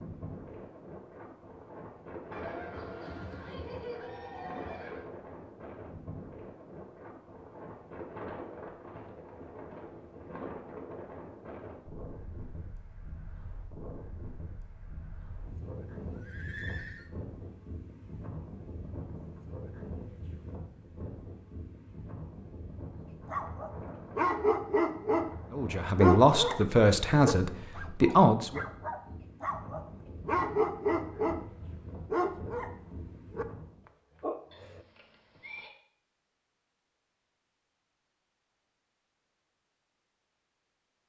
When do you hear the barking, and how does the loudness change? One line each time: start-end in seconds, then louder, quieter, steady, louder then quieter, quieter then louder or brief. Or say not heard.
23.2-25.3 brief
25.9-31.4 quieter then louder
32.1-33.5 brief
34.2-34.8 brief.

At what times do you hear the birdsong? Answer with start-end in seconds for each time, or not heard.
not heard.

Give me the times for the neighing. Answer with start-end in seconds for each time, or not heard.
2.3-5.1, 15.3-17.1, 34.5-35.7.